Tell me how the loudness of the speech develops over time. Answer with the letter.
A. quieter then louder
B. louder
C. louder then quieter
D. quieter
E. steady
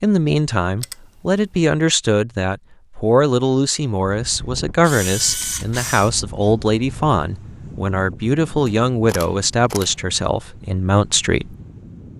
E.